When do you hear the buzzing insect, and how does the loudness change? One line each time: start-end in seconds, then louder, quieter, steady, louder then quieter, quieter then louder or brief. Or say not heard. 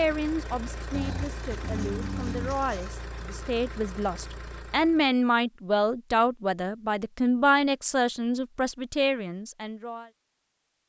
not heard.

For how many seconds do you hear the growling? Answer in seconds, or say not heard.
2 s.